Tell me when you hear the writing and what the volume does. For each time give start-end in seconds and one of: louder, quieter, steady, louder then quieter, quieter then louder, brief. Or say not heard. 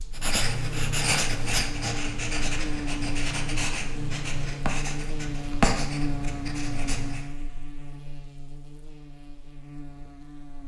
0.1-7.2 quieter then louder.